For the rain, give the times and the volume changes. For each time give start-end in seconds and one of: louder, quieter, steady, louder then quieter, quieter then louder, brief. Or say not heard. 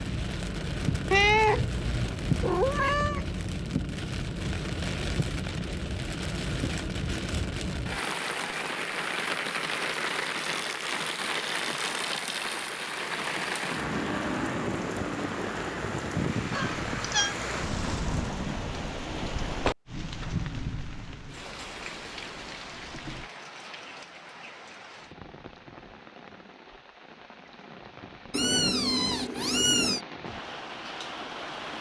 0.0-31.7 quieter.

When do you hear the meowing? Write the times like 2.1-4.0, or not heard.
1.1-3.4, 16.5-17.4, 28.3-30.0.